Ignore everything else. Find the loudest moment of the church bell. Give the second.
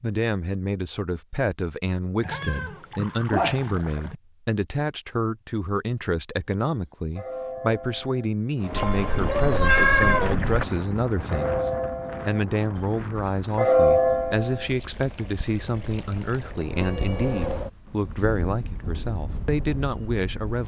14 s.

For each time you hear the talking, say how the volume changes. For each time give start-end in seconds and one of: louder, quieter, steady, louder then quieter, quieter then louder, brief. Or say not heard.
0.0-20.6 steady.